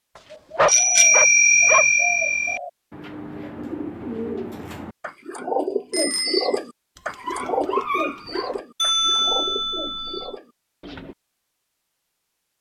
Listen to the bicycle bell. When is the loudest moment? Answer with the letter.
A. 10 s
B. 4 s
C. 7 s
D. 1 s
D.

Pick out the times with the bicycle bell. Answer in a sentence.
You can hear the bicycle bell from 0.7 to 2.6 s, from 5.9 to 6.6 s and from 8.8 to 10.3 s.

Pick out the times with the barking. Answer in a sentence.
You can hear the barking from 0.1 to 1.9 s and from 7.0 to 8.6 s.